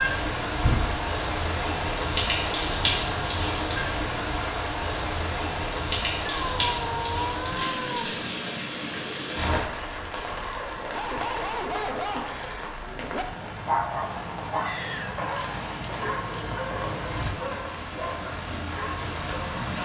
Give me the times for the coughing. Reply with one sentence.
The coughing can't be heard in this clip.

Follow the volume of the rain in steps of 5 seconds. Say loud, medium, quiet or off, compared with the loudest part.
loud, loud, medium, medium.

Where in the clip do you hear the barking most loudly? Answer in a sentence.
The volume of the barking peaks at 14 seconds.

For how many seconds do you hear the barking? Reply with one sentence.
You can hear the barking for 9 seconds altogether.